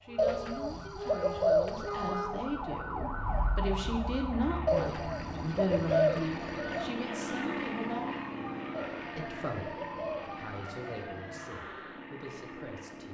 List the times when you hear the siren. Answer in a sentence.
You can hear the siren from 0.0 to 11.7 s.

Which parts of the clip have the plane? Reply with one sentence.
The plane can be heard from 4.3 to 13.0 s.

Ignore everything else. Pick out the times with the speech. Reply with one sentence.
You can hear the speech from 0.0 to 8.2 s and from 9.2 to 13.0 s.